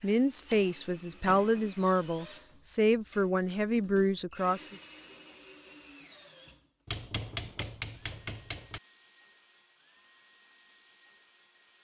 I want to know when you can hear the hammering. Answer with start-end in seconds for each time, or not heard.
0.0-1.7, 6.8-8.8.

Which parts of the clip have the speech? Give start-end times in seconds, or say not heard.
0.0-4.8.